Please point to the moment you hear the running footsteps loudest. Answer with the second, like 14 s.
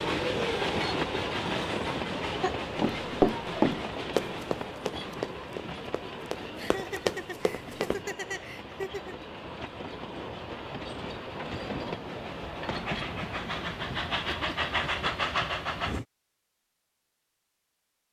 3 s.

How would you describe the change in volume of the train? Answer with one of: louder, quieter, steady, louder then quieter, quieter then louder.
quieter then louder.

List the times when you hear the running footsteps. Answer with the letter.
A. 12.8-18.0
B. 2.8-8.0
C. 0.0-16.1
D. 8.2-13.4
B.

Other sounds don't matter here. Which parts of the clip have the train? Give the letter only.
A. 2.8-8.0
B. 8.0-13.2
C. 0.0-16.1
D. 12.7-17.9
C.